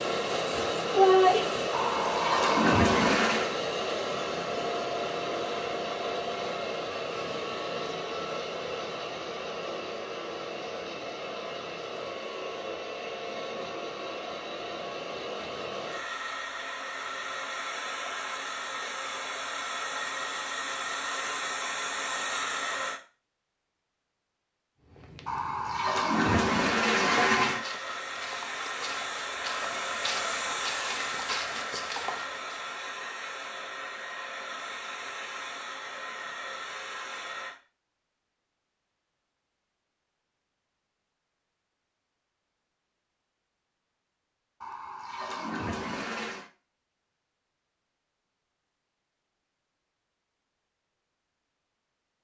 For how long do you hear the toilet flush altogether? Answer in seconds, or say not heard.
6 s.